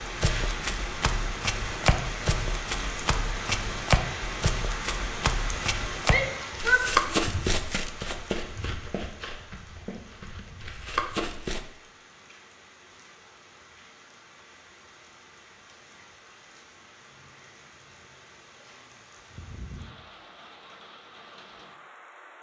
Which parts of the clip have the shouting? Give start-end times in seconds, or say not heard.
6.0-7.2.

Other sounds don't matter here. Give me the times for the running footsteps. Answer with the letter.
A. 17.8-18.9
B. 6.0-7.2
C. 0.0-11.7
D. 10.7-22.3
C.